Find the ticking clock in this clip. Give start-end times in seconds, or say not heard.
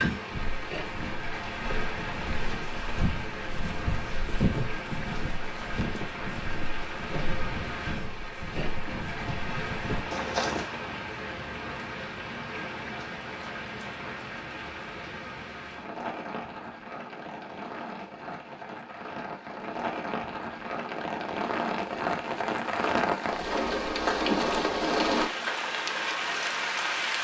not heard.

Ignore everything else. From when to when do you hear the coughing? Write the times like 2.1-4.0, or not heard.
not heard.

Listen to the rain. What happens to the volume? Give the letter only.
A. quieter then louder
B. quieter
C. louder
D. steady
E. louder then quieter
C.